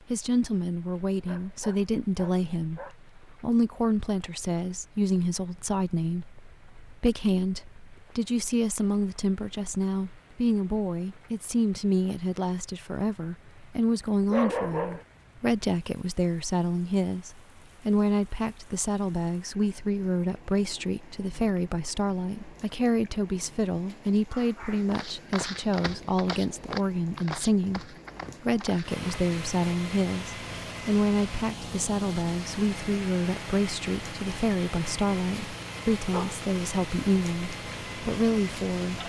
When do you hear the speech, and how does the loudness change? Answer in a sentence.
The speech can be heard from 0.1 to 39.0 s, at a steady volume.